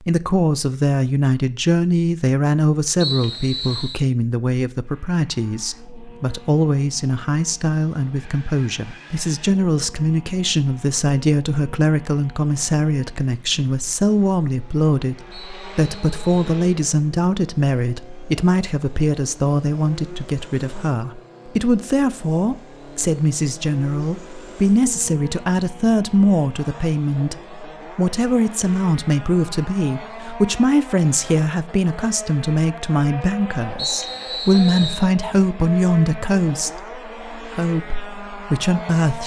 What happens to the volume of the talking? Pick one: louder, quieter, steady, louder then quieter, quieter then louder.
steady.